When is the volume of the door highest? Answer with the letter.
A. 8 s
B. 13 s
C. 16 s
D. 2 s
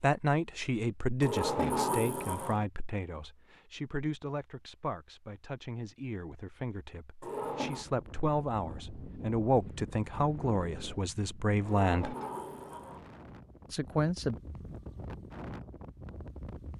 D.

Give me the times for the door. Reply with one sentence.
The door can be heard from 1.2 to 2.6 s, from 7.2 to 7.8 s and from 11.7 to 13.1 s.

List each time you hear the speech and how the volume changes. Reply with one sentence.
The speech can be heard from 0.0 to 12.2 s, getting quieter then louder; and briefly from 13.7 to 14.3 s.